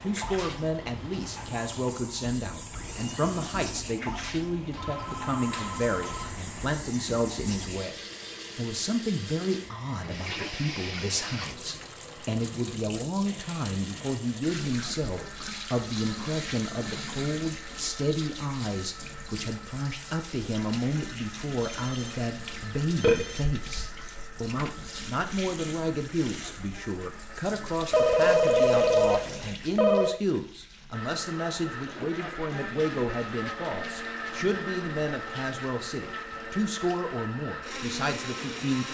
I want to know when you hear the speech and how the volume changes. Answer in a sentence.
The speech can be heard from 0.0 to 38.8 s, at a steady volume.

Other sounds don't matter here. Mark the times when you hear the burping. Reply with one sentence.
The burping can be heard from 22.6 to 23.2 s.